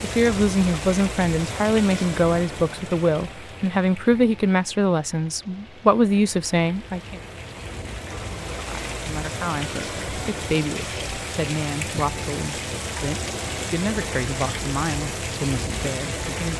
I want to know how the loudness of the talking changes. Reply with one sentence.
The loudness of the talking goes down.